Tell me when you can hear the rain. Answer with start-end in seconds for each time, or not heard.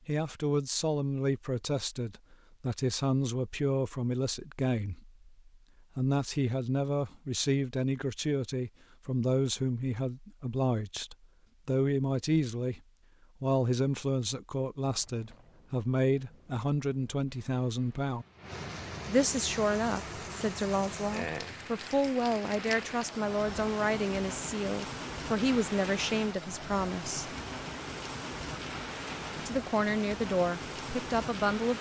14.8-31.7.